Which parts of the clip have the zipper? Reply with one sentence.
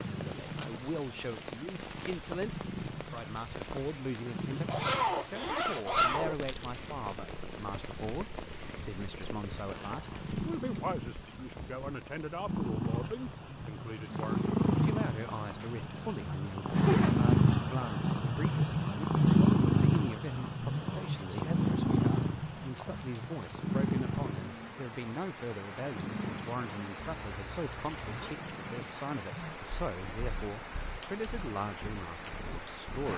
The zipper can be heard from 4.7 to 6.3 s, from 16.7 to 17.4 s and from 27.2 to 28.4 s.